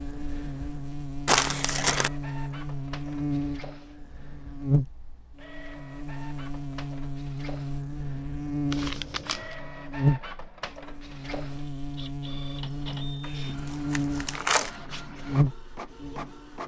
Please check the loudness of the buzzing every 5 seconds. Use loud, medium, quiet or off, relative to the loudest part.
loud, medium, loud, loud.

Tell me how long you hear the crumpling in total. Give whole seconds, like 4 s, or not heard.
3 s.